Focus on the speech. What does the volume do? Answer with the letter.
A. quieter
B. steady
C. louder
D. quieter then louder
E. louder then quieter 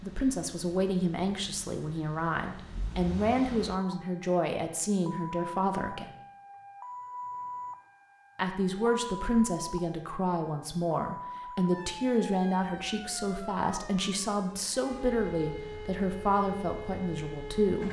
B.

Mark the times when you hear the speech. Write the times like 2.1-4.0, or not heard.
0.0-6.2, 8.3-17.8.